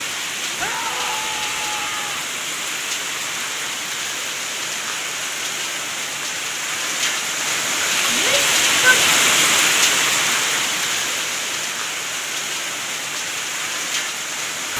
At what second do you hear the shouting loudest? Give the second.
9 s.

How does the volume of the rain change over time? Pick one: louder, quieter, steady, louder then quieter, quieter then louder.
louder then quieter.